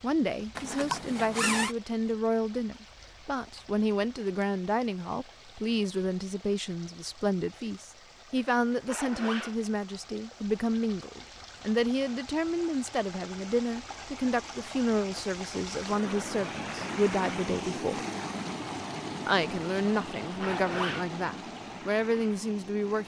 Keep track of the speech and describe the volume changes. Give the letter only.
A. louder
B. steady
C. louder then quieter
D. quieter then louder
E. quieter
B.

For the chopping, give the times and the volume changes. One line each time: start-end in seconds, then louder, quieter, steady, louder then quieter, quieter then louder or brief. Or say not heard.
not heard.